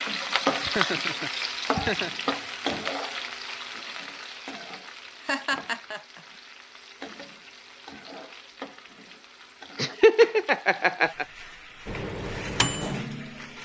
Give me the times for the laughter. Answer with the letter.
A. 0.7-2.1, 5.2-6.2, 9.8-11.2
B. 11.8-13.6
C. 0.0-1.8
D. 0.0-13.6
A.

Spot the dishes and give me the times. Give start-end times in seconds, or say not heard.
not heard.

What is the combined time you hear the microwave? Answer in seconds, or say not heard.
2 s.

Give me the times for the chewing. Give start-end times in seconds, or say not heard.
not heard.